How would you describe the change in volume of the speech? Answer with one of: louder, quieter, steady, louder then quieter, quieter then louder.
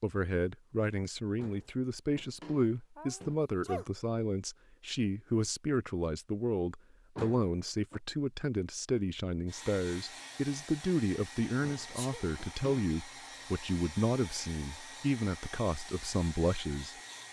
steady.